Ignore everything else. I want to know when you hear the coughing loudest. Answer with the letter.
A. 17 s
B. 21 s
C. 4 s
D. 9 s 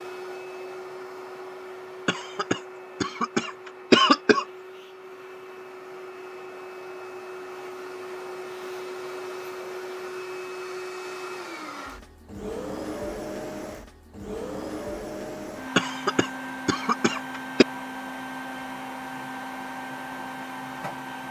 C.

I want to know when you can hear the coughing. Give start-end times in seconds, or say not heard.
2.0-4.5, 15.8-17.6.